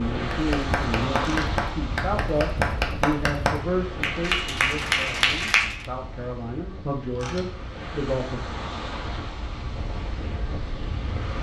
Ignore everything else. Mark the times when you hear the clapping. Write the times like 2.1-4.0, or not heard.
0.3-5.8.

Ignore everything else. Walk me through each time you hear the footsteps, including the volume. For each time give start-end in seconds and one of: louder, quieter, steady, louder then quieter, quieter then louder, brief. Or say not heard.
not heard.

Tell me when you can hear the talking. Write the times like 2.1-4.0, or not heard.
0.0-8.4.